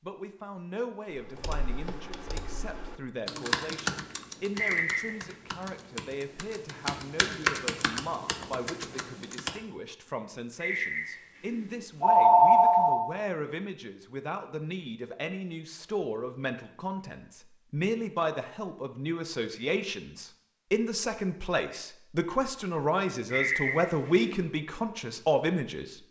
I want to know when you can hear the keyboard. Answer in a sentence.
The keyboard can be heard from 1.1 to 9.6 s.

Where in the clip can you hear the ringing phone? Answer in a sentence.
You can hear the ringing phone from 4.5 to 5.2 s, from 10.6 to 13.1 s and from 23.3 to 24.4 s.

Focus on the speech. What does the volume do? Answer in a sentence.
The loudness of the speech goes up.